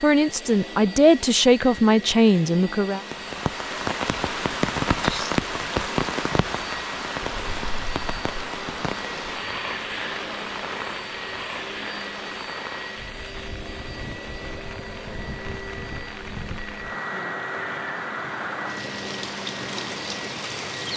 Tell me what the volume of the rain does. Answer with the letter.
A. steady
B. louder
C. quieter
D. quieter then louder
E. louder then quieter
D.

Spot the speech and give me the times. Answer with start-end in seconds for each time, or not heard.
0.0-3.0.